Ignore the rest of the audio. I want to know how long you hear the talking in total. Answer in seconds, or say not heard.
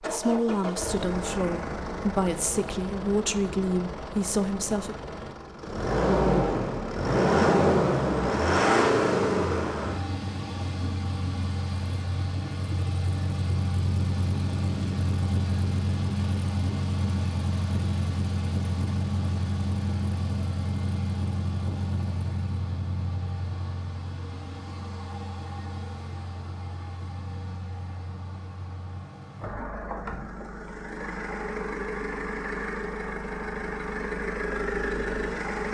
5 s.